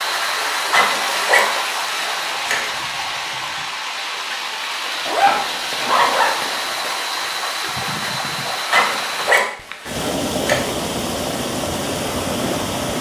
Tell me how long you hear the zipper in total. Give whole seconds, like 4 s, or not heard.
6 s.